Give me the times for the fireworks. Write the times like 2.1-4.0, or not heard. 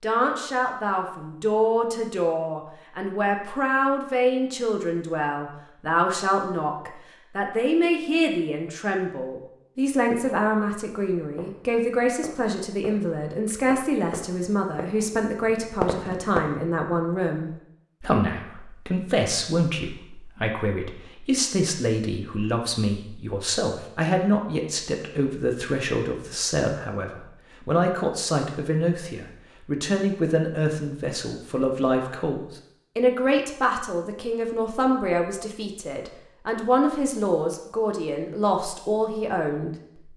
11.2-16.6.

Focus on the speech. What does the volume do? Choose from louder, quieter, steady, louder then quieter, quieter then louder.
steady.